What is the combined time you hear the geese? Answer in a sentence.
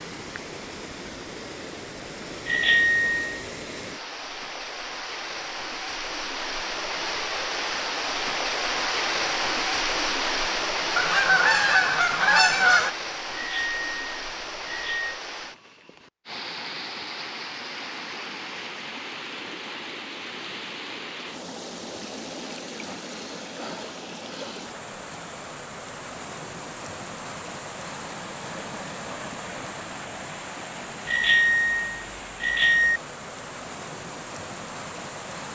You can hear the geese for 2 seconds altogether.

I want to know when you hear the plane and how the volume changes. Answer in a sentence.
You can't hear the plane here.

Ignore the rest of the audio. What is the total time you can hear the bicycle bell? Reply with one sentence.
The bicycle bell can be heard for 5 seconds in total.